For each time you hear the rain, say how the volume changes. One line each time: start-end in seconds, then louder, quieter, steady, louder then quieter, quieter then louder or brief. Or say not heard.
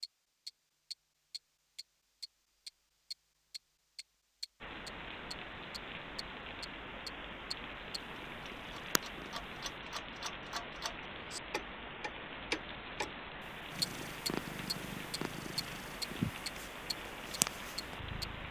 4.6-18.4 steady.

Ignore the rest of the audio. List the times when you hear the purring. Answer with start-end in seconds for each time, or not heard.
8.0-9.8, 13.7-18.4.